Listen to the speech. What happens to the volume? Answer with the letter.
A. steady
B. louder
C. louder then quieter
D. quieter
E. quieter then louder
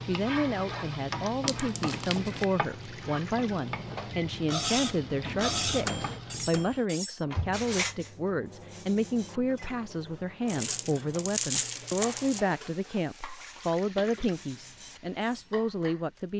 A.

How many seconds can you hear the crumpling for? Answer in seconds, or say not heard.
3 s.